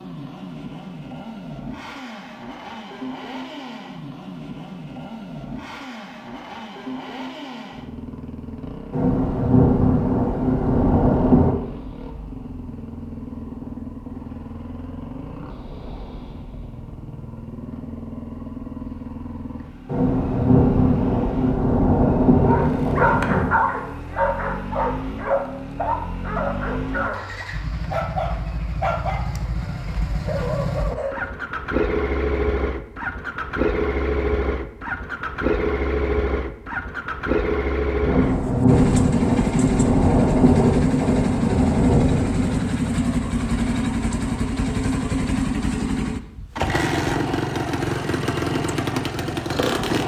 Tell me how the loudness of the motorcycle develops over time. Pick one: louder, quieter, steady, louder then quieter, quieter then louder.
louder.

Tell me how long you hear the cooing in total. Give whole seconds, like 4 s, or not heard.
not heard.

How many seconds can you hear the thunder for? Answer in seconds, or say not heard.
11 s.